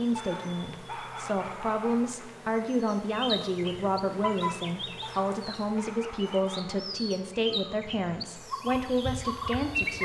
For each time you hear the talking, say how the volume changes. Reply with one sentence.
You can hear the talking from 0.0 to 9.9 s, at a steady volume.